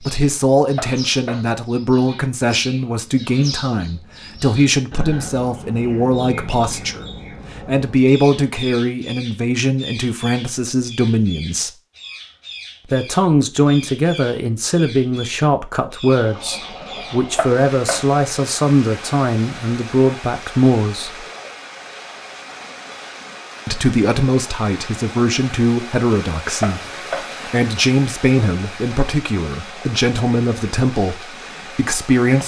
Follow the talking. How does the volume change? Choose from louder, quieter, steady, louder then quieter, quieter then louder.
steady.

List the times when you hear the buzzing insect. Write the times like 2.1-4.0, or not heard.
not heard.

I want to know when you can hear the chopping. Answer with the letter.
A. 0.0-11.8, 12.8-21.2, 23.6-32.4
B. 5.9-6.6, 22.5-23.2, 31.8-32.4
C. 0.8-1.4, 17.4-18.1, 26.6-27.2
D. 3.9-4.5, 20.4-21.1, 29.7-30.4
C.